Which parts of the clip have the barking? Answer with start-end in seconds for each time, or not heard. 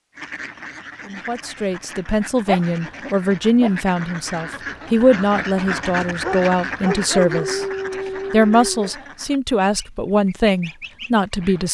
2.5-3.7, 6.2-8.9.